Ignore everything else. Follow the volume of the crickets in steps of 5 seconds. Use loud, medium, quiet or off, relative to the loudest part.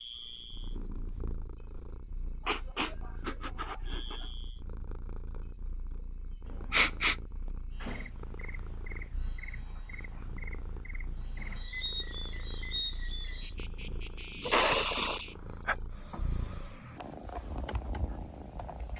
loud, loud, medium, medium.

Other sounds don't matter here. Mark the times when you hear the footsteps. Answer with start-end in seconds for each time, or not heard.
not heard.